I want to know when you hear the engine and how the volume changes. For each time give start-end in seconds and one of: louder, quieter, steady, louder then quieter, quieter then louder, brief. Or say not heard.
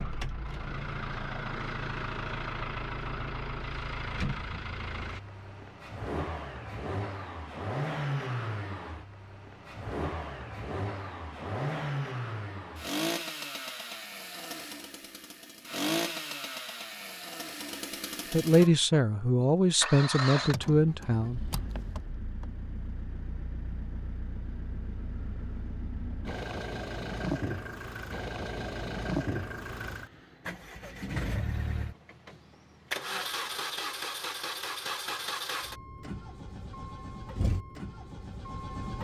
0.0-38.9 steady.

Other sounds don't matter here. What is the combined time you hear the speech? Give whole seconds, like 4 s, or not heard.
3 s.